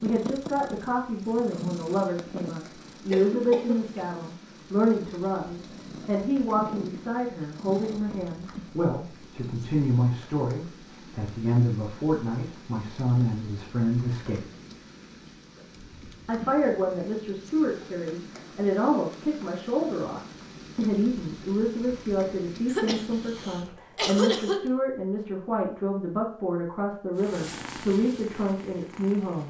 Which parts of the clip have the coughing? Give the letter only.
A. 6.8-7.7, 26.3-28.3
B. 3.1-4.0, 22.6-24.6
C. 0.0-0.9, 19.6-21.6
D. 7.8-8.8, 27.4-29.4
B.